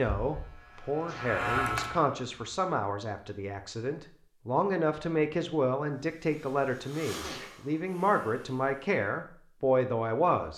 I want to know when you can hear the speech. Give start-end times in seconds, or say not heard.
0.0-10.5.